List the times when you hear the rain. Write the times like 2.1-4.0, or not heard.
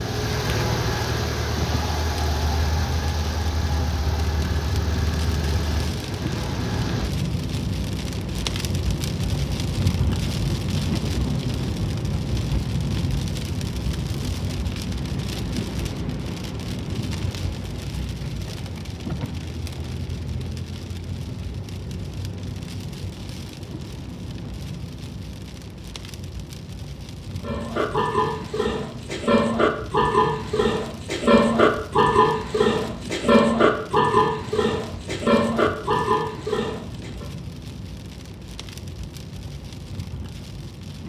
0.0-41.0.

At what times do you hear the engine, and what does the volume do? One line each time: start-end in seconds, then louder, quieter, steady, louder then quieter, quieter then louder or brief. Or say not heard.
0.0-7.1 quieter.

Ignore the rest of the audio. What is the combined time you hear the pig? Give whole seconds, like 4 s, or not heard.
10 s.